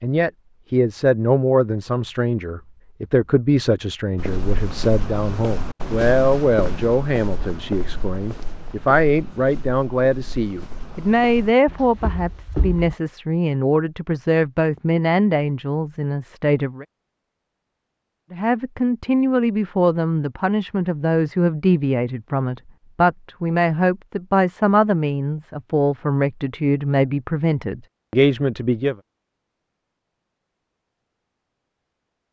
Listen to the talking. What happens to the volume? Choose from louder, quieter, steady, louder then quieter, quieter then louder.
steady.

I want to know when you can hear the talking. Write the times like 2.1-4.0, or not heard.
0.0-16.9, 18.3-28.9.